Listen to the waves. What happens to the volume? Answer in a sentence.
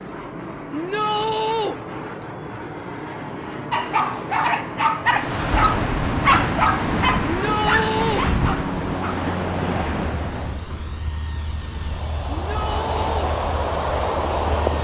The loudness of the waves goes down, then up.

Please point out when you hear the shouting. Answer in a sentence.
You can hear the shouting from 0.7 to 1.8 s, from 7.2 to 8.2 s and from 12.3 to 13.3 s.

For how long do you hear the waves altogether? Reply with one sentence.
You can hear the waves for 10 seconds altogether.